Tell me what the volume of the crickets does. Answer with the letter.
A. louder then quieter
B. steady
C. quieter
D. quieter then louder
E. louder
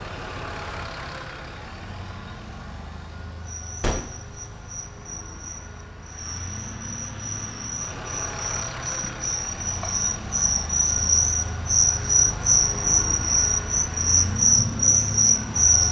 E.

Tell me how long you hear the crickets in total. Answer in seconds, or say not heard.
12 s.